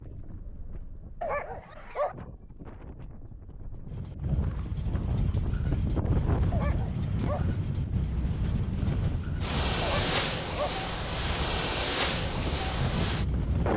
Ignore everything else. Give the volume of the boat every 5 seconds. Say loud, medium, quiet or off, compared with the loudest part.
quiet, loud, loud.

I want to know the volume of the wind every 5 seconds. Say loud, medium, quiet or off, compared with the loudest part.
medium, loud, loud.